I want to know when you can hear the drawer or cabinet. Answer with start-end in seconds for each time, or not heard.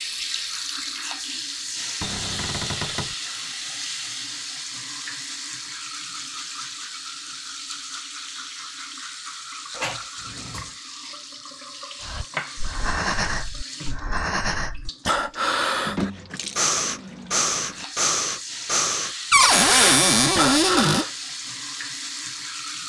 2.0-3.1, 9.7-10.7, 19.3-21.1.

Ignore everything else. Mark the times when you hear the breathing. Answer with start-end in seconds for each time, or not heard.
12.0-21.1.